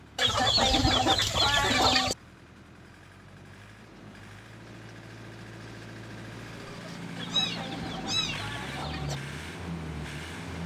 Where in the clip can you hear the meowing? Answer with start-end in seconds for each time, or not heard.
0.2-2.0, 6.7-8.4.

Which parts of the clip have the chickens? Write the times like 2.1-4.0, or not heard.
0.1-2.1, 7.2-9.2.